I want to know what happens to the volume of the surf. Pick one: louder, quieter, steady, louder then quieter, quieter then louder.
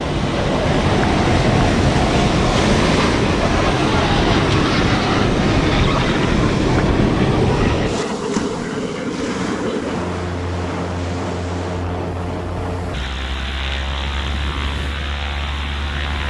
quieter.